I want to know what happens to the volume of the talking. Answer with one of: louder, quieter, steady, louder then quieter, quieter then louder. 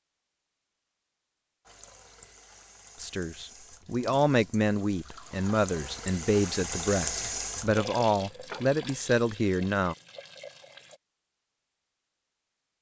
steady.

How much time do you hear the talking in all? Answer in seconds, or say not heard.
7 s.